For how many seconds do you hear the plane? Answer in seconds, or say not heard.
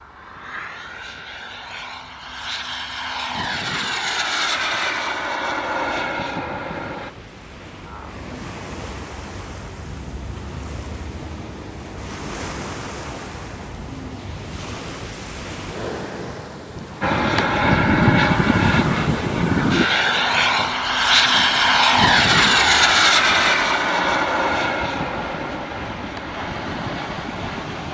18 s.